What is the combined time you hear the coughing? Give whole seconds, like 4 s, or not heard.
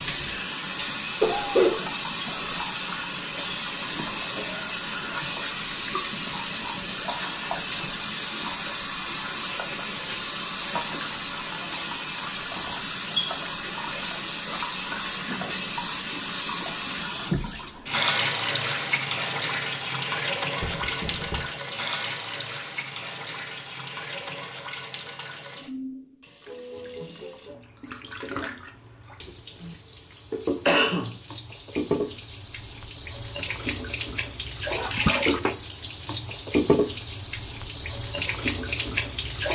2 s.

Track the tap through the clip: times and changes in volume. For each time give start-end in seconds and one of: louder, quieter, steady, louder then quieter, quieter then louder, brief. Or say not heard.
0.0-39.5 quieter then louder.